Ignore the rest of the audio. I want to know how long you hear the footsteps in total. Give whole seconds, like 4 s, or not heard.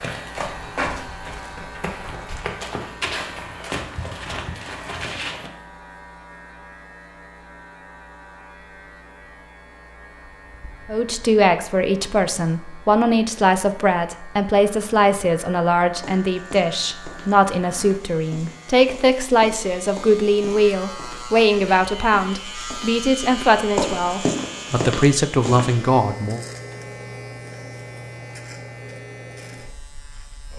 15 s.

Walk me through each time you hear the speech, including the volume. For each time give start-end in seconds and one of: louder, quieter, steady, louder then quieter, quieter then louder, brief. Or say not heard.
10.8-26.4 steady.